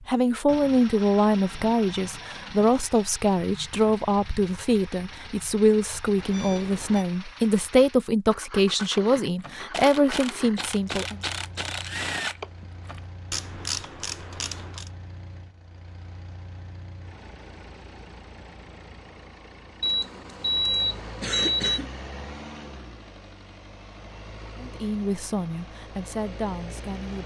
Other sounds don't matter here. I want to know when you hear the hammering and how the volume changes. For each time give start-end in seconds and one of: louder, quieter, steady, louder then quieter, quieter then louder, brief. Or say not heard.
not heard.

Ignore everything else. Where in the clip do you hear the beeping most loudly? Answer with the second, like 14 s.
21 s.